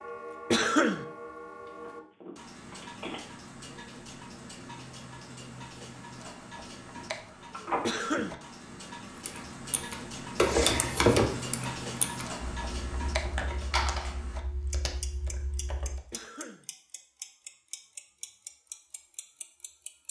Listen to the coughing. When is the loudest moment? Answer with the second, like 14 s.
1 s.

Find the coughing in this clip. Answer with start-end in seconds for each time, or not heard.
0.5-1.1, 7.8-8.4, 16.1-16.6.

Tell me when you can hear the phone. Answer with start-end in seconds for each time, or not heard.
1.6-3.1, 7.5-8.2, 13.7-14.2.